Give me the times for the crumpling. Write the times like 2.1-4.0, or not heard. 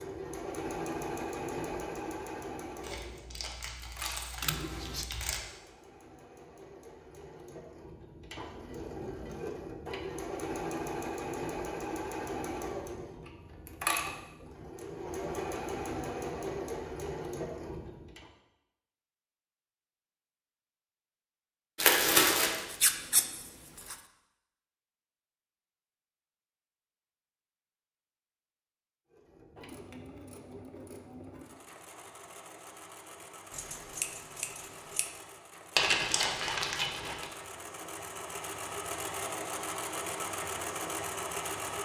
2.8-5.4, 21.8-22.6, 35.8-37.2.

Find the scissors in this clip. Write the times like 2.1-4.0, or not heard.
4.4-5.0, 22.7-23.9, 33.5-35.1.